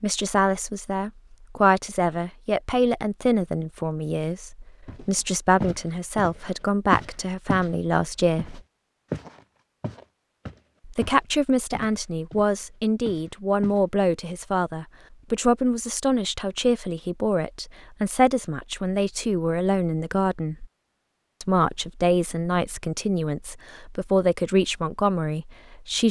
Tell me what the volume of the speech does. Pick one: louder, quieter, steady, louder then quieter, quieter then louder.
steady.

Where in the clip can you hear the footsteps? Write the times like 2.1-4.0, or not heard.
4.8-7.7, 8.3-13.8.